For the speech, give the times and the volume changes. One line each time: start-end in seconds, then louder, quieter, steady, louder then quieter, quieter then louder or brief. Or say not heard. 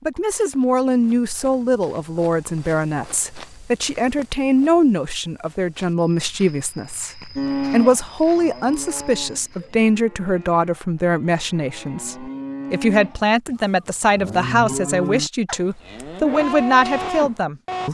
0.1-17.8 steady.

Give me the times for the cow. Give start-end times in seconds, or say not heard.
7.3-17.8.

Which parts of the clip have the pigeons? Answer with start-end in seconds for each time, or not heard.
not heard.